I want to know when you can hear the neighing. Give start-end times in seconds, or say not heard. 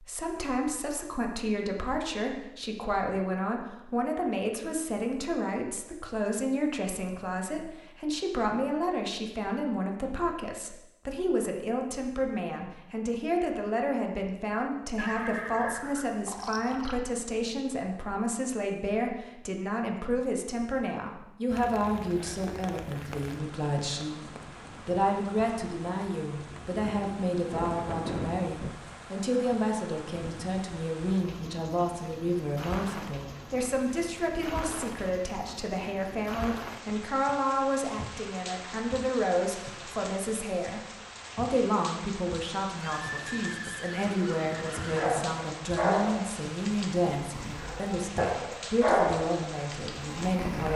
14.9-17.0, 42.8-45.4.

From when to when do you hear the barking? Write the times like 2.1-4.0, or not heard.
44.8-50.7.